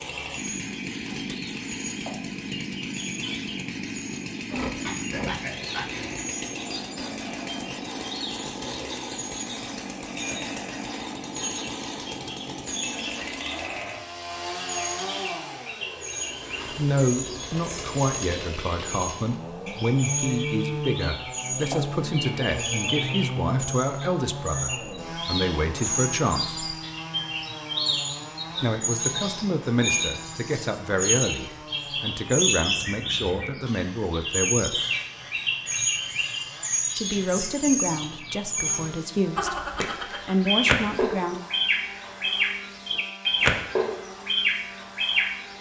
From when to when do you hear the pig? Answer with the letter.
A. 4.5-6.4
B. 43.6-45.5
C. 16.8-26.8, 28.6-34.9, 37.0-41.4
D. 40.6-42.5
A.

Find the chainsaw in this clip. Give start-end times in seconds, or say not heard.
0.0-45.5.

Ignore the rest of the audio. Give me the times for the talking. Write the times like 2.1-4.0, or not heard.
16.8-26.8, 28.6-34.9, 37.0-41.4.